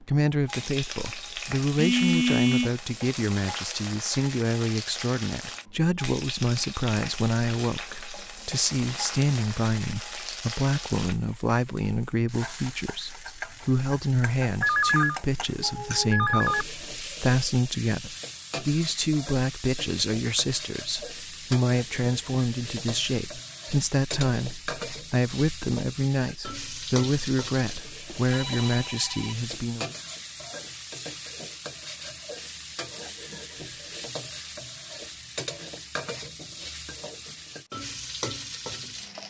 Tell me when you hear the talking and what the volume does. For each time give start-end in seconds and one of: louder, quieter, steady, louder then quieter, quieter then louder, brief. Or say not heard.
0.0-29.9 steady.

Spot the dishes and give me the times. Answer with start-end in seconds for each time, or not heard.
not heard.